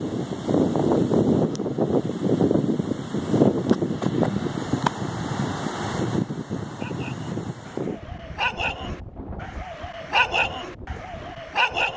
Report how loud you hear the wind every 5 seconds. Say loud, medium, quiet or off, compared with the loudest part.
loud, medium, quiet.